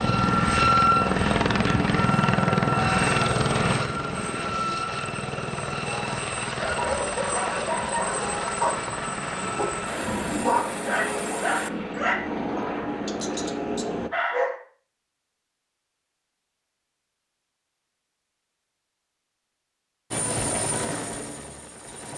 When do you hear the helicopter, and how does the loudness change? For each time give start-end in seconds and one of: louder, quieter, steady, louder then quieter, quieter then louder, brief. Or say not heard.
0.0-14.1 quieter
20.1-22.1 brief.